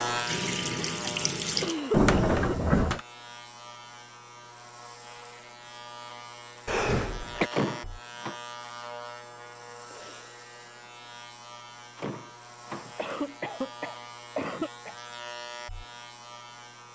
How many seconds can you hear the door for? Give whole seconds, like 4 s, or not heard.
3 s.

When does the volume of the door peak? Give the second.
2 s.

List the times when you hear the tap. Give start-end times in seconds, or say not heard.
0.0-1.8.